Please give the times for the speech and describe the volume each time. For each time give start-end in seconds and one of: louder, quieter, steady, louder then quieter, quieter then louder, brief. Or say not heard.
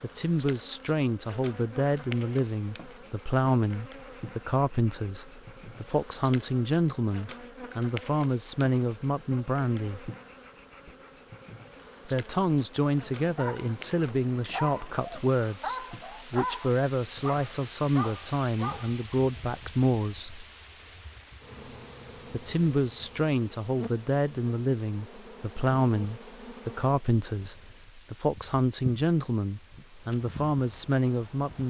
0.0-10.1 steady
12.1-20.4 steady
22.3-31.6 steady.